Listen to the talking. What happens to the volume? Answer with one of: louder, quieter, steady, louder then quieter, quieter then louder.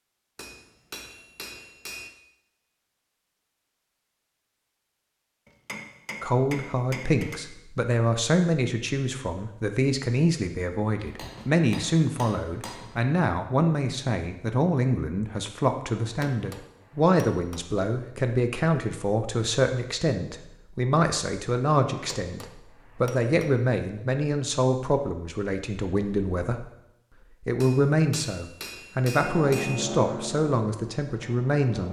steady.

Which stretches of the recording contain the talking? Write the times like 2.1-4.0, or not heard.
6.2-26.7, 27.4-31.8.